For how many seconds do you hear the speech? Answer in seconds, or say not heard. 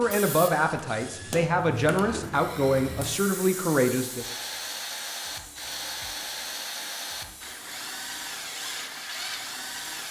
4 s.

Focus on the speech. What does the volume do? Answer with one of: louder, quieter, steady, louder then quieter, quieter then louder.
steady.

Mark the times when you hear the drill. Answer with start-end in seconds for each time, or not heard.
0.0-10.0.